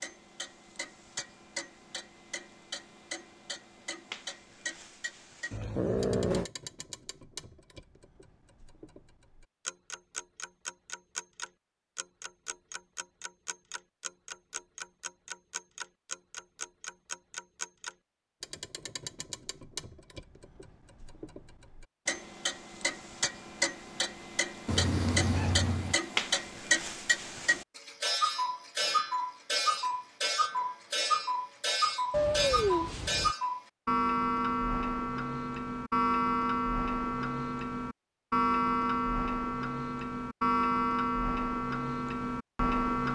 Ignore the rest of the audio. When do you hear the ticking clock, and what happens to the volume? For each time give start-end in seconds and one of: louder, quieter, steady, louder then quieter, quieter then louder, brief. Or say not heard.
0.0-43.1 louder.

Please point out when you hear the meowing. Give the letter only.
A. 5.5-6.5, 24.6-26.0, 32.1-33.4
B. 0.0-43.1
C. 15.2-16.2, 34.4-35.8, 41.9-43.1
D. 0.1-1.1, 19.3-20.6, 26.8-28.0
A.